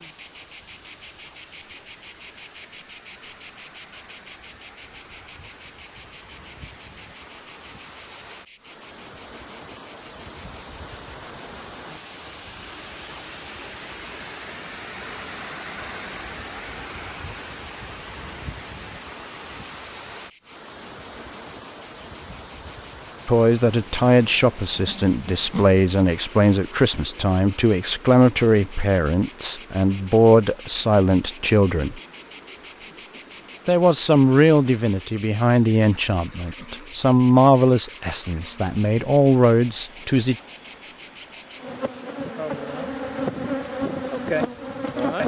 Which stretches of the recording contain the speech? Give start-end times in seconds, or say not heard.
23.2-32.0, 33.6-40.4.